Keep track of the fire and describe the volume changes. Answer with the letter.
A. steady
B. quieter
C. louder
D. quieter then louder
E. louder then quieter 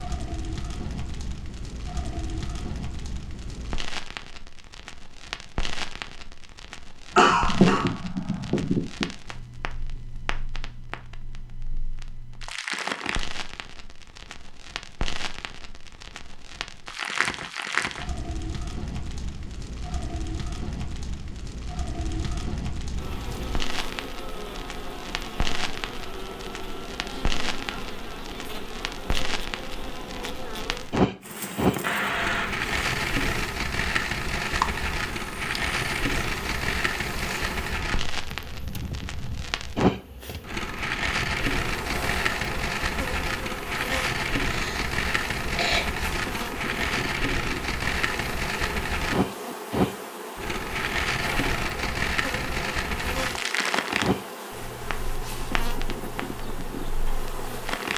C.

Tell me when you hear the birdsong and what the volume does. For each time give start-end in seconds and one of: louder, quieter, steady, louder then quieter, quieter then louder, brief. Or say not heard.
not heard.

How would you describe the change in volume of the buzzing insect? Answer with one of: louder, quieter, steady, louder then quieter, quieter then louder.
steady.